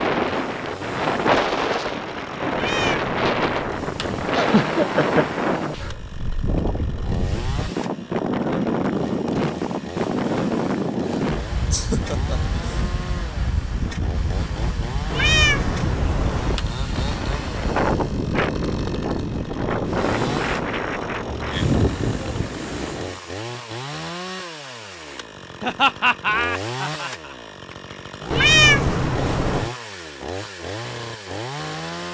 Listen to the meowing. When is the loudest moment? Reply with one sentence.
The volume of the meowing peaks at 29 seconds.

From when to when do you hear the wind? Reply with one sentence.
The wind can be heard from 0.0 to 23.2 s.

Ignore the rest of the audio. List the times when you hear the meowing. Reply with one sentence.
You can hear the meowing from 2.5 to 4.2 s, from 15.1 to 16.6 s and from 28.3 to 29.7 s.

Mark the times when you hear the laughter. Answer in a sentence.
The laughter can be heard from 4.3 to 5.9 s, from 11.7 to 12.9 s and from 25.6 to 27.4 s.